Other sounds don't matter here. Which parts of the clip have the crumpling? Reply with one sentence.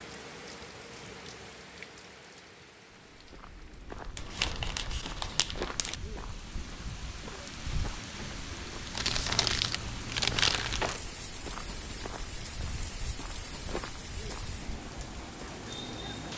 You can hear the crumpling from 4.2 to 6.0 s and from 8.9 to 11.0 s.